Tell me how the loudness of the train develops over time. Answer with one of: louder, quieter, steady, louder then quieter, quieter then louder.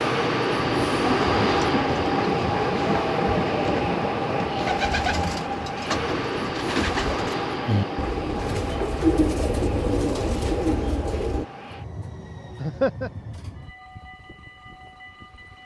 quieter.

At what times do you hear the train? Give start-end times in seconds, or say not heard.
0.0-15.6.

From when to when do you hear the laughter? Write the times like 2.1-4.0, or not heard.
12.6-13.1.